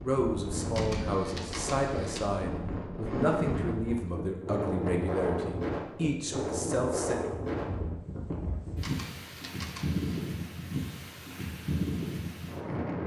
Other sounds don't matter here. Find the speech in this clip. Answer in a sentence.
You can hear the speech from 0.0 to 7.2 s.